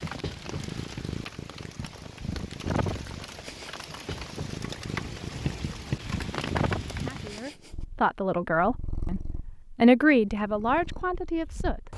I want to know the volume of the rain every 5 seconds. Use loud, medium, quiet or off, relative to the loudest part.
medium, loud, off.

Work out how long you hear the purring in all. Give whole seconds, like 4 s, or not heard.
12 s.